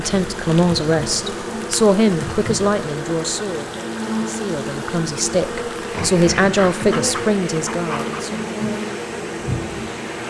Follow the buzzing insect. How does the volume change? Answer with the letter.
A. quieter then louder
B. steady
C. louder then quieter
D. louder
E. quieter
B.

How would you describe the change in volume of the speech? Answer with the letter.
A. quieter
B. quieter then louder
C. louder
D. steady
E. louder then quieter
B.